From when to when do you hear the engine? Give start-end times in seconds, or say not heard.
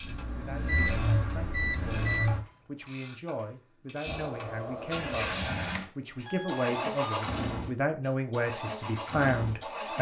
0.0-2.4, 4.0-9.9.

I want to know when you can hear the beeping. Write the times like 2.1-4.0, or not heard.
0.1-2.3, 5.7-7.2.